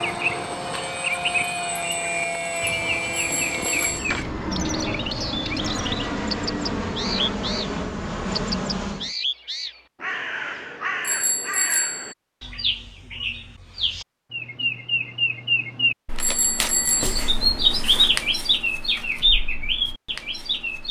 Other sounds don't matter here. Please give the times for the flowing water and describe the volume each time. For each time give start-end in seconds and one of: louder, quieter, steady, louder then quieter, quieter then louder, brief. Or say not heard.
not heard.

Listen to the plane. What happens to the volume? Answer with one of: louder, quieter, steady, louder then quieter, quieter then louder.
steady.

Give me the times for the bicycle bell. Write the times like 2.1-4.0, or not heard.
3.1-4.2, 11.0-12.2, 16.2-17.2.